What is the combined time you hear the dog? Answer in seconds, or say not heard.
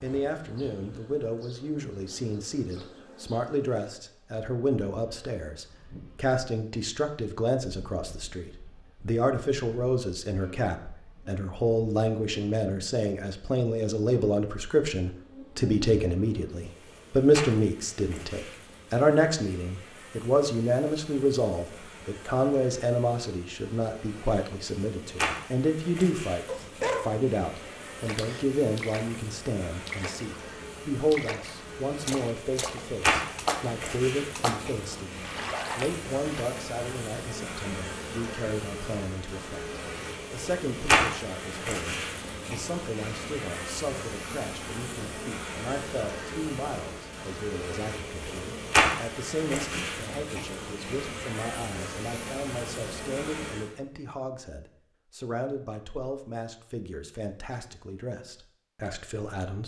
2 s.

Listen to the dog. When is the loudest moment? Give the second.
27 s.